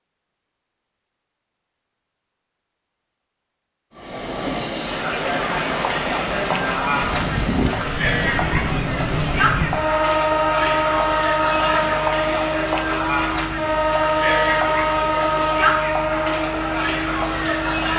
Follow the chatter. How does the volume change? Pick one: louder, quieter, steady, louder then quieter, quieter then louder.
steady.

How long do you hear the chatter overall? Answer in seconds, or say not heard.
13 s.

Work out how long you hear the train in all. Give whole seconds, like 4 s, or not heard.
14 s.